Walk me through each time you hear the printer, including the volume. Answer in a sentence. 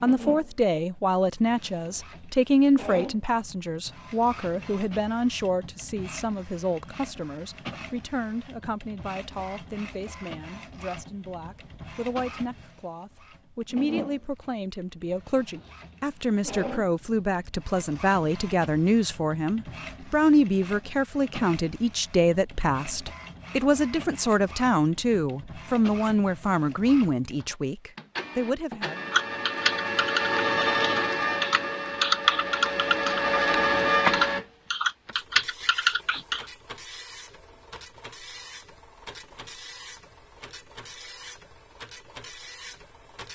The printer can be heard from 0.0 to 43.3 s, getting louder then quieter.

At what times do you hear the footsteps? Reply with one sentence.
The footsteps can't be heard in this clip.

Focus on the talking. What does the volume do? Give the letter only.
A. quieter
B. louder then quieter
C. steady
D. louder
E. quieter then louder
E.